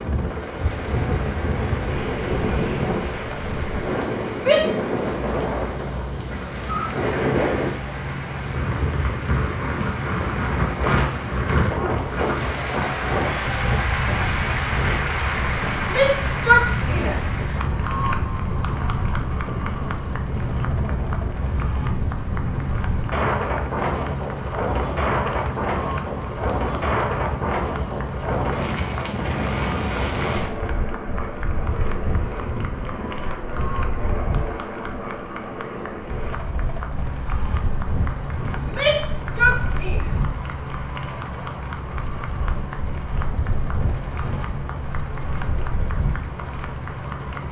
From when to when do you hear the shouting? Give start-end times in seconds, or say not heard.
4.5-4.9, 15.9-17.2, 38.6-40.1.